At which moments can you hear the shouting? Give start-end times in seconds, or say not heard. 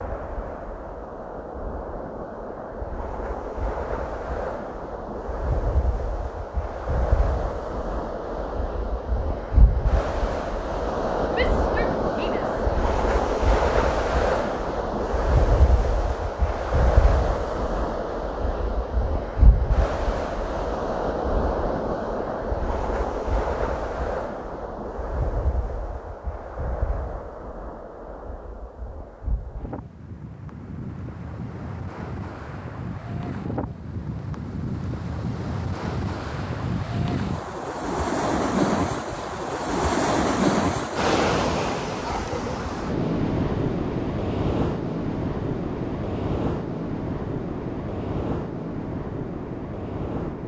11.3-12.6.